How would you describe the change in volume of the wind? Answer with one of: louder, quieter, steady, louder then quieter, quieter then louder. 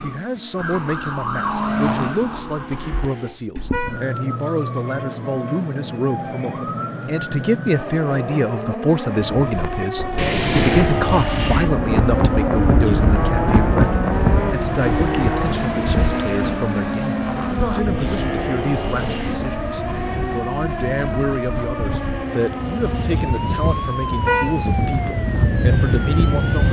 quieter then louder.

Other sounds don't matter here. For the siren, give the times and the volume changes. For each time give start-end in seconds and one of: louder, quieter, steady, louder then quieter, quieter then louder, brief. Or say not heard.
0.0-26.6 steady.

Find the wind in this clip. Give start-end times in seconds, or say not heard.
9.1-26.6.